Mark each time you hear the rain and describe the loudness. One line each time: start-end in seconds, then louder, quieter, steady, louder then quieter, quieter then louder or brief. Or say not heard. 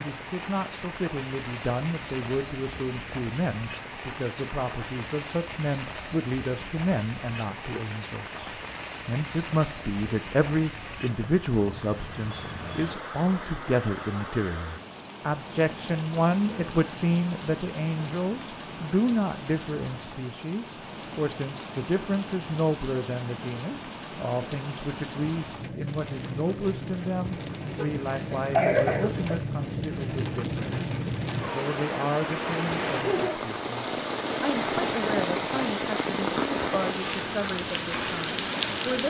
0.0-39.0 louder.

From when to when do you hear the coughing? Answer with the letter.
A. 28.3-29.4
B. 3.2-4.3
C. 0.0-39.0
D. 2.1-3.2
A.